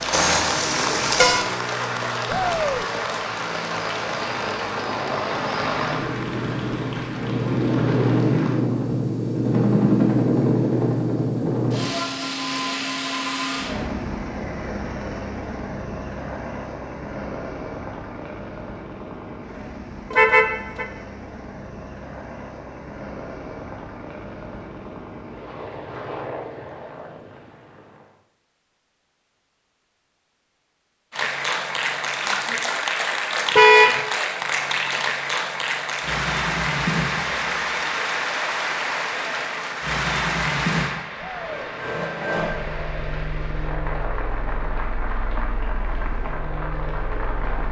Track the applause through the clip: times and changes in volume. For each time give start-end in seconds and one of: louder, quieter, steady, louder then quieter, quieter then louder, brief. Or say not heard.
0.0-8.6 quieter
31.1-47.6 quieter.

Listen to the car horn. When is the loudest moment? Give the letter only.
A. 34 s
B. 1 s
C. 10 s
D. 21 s
A.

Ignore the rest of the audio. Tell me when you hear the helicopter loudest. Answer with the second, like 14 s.
10 s.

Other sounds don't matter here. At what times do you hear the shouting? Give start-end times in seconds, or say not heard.
2.2-2.9, 41.1-41.7.